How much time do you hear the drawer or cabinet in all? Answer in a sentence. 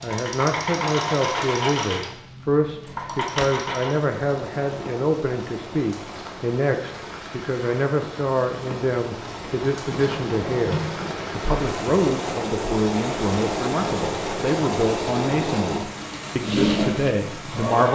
The drawer or cabinet can be heard for 2 seconds in total.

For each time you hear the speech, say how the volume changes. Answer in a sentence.
The speech can be heard from 0.0 to 17.8 s, at a steady volume.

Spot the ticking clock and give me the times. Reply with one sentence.
The ticking clock can't be heard in this clip.